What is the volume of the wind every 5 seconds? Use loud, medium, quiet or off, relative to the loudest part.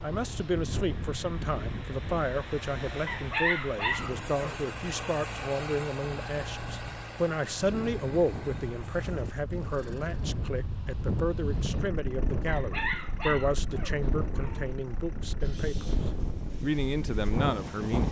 medium, medium, loud, loud.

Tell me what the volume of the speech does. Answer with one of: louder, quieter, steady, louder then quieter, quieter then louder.
steady.